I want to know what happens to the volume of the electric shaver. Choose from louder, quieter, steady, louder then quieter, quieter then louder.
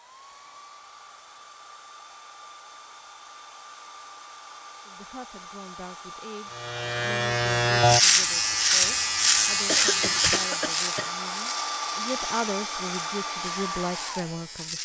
quieter.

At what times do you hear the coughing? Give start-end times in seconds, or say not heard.
8.8-11.1.